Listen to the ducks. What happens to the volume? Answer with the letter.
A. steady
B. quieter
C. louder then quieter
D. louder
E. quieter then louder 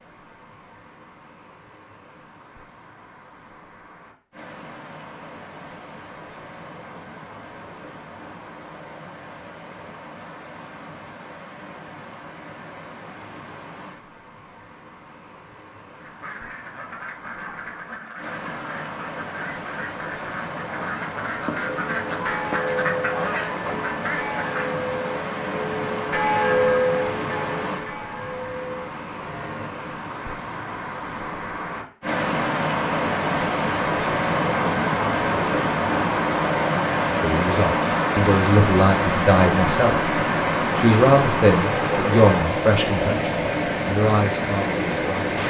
D.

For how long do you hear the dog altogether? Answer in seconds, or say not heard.
not heard.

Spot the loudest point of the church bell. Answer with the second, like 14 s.
27 s.